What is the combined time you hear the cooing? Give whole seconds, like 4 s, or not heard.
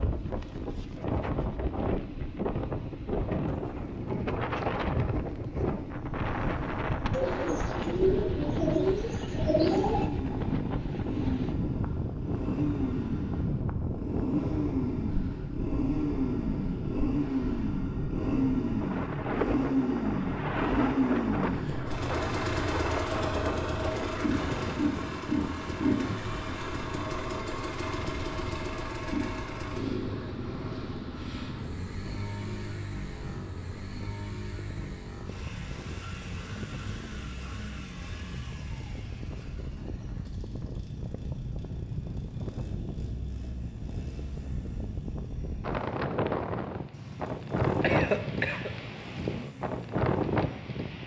3 s.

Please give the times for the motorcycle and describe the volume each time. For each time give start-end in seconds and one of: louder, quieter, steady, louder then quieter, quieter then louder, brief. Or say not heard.
0.0-51.0 louder then quieter.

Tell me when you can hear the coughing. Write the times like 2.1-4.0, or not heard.
47.8-48.7.